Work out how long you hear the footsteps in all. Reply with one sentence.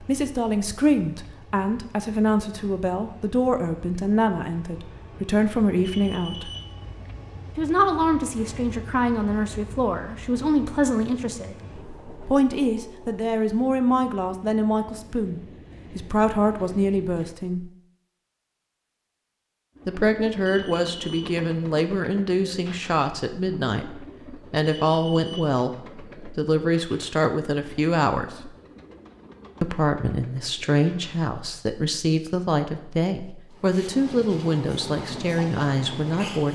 You can't hear the footsteps here.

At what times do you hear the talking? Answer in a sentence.
The talking can be heard from 0.0 to 6.5 s, from 7.5 to 11.6 s, from 12.2 to 17.7 s, from 19.9 to 28.5 s and from 29.6 to 36.5 s.